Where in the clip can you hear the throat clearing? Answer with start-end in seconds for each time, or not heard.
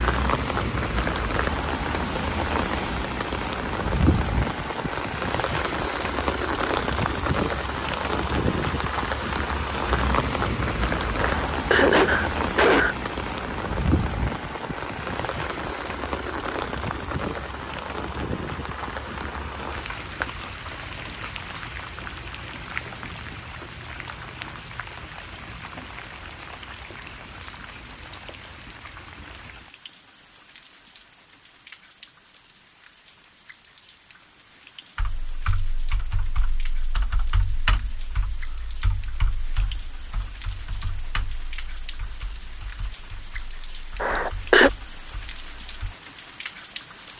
11.2-12.9, 44.0-44.7.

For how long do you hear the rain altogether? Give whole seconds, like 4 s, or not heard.
47 s.